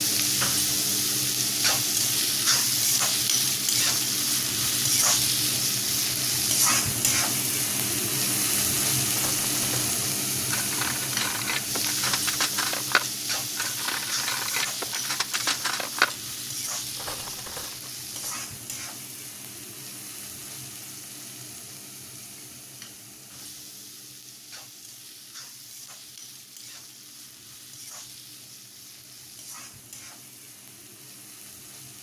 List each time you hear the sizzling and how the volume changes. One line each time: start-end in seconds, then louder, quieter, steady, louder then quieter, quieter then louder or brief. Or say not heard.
0.0-31.9 quieter.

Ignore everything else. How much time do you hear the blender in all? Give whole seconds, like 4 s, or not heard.
not heard.